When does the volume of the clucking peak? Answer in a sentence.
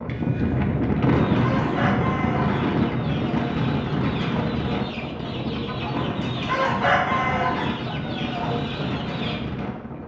The volume of the clucking peaks at 7 seconds.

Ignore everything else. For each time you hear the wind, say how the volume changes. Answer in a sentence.
You can hear the wind from 0.0 to 10.0 s, getting quieter.